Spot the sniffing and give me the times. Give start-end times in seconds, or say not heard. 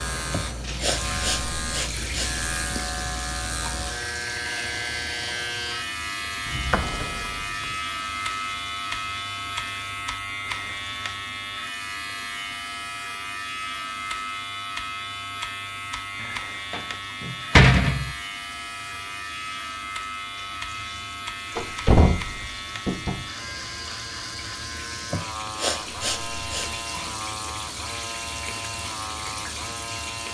0.3-2.8, 25.1-26.8.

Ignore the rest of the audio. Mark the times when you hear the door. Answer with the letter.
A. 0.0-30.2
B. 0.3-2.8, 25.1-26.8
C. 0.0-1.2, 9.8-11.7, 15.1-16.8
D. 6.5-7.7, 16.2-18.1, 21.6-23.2
D.